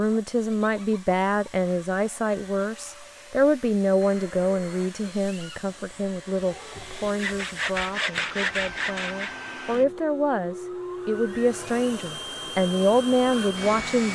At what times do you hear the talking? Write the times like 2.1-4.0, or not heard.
0.0-14.0.